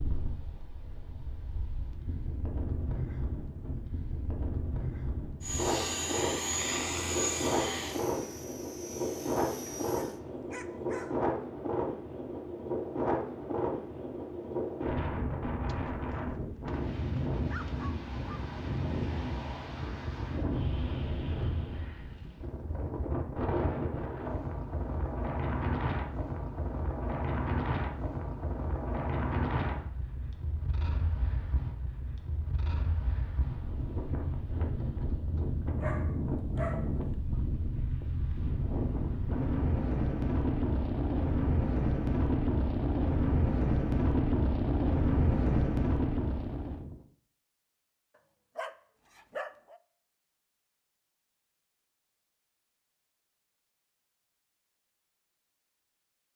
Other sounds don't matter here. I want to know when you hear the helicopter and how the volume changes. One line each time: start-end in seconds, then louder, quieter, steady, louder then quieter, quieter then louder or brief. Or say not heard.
5.4-10.2 quieter.